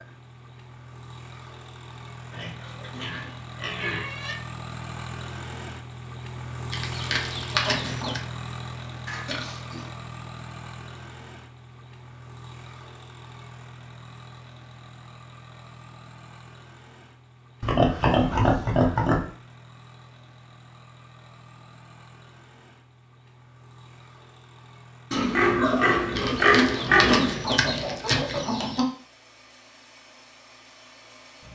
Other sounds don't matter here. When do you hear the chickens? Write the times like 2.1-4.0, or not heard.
6.7-8.2, 26.1-28.9.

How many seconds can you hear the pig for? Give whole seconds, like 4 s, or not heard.
7 s.